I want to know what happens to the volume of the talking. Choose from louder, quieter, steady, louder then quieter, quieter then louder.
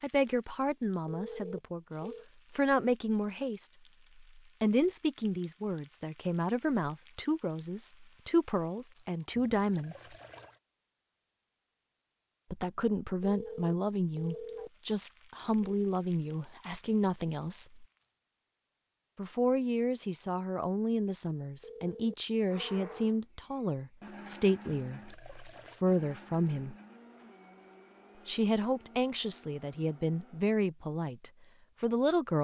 steady.